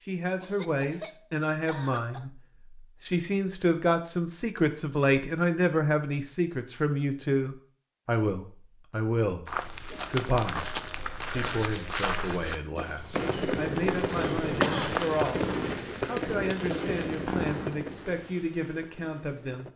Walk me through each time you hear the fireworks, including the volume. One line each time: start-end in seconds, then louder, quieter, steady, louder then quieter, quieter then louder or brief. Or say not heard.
13.1-19.7 quieter.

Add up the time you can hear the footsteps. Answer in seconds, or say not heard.
6 s.